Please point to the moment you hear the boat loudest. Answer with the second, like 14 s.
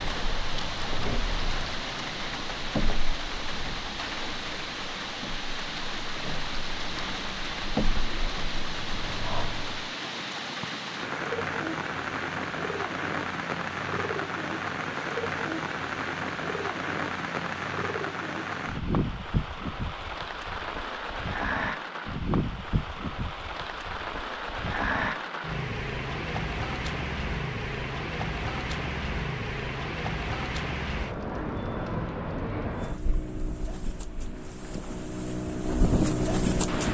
36 s.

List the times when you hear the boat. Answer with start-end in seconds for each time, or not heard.
0.0-9.8, 32.7-36.8.